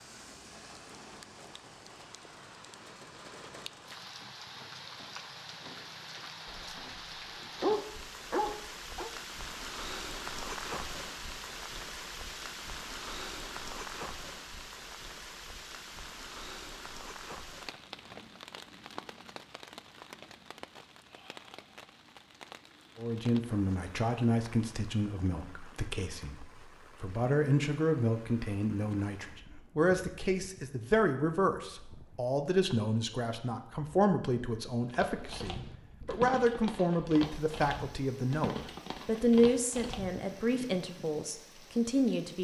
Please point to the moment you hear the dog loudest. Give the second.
8 s.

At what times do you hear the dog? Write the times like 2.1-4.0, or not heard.
6.5-7.0, 7.6-9.1.